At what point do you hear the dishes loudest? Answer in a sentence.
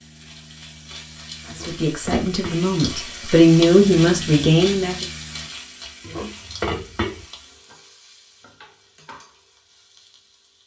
The loudest moment of the dishes is at 7 seconds.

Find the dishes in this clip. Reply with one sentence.
The dishes can be heard from 1.4 to 2.7 s and from 6.0 to 7.2 s.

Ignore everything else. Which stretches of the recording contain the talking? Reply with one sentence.
You can hear the talking from 1.6 to 5.0 s.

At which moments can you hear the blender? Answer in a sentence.
You can't hear the blender here.